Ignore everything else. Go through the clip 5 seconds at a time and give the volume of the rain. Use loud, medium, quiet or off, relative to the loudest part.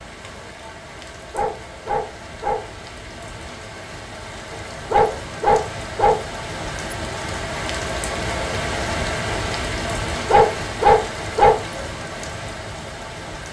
medium, loud, loud.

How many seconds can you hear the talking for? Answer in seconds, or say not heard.
not heard.